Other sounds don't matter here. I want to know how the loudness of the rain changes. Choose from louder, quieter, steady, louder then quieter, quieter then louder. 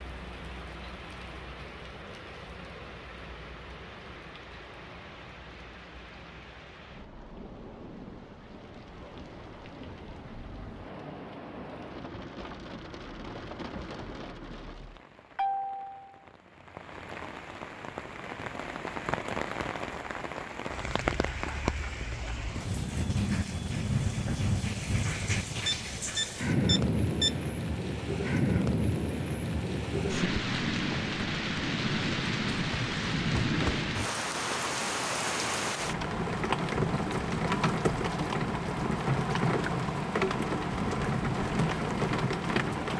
louder.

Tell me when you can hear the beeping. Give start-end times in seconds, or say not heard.
25.6-27.4.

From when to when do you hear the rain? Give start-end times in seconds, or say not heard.
0.0-42.9.